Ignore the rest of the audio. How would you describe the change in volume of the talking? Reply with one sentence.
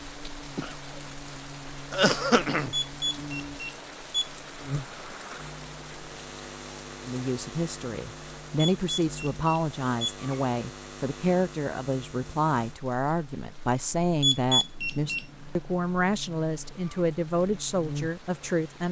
The volume of the talking stays about the same.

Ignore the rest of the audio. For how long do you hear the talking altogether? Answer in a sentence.
You can hear the talking for 12 seconds altogether.